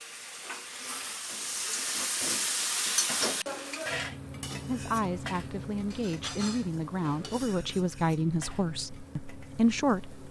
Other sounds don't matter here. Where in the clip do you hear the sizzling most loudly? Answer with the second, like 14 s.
3 s.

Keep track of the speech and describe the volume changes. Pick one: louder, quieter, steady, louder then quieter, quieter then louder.
louder.